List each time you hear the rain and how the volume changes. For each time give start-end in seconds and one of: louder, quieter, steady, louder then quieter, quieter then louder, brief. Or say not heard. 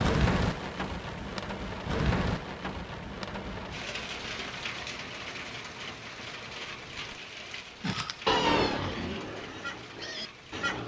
0.0-10.8 quieter.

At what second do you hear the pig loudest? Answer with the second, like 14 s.
8 s.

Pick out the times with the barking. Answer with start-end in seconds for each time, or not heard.
not heard.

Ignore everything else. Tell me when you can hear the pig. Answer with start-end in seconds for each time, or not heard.
7.8-10.8.